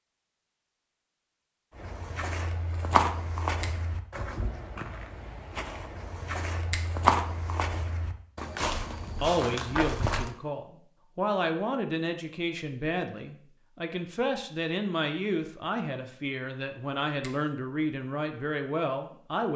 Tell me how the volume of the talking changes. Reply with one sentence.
The loudness of the talking stays about the same.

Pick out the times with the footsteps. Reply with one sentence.
You can hear the footsteps from 1.8 to 10.3 s.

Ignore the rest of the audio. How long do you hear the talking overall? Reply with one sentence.
You can hear the talking for 10 seconds altogether.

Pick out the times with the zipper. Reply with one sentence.
You can't hear the zipper here.